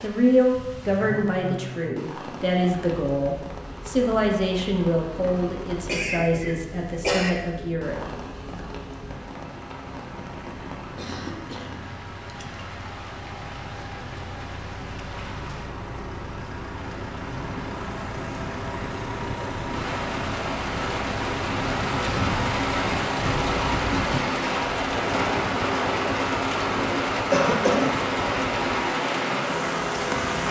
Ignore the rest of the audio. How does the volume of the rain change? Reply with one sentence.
The loudness of the rain goes up.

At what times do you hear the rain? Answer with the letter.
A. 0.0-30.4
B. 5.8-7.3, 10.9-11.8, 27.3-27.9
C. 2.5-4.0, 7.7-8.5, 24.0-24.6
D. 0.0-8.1
A.